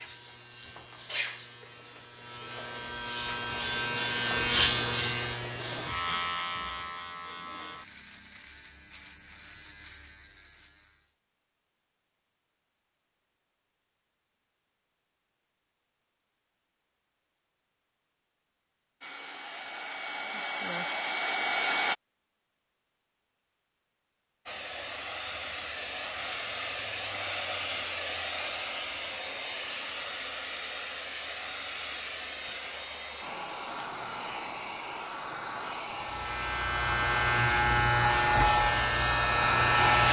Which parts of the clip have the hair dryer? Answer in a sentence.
The hair dryer can be heard from 19.0 to 21.9 s and from 24.4 to 40.0 s.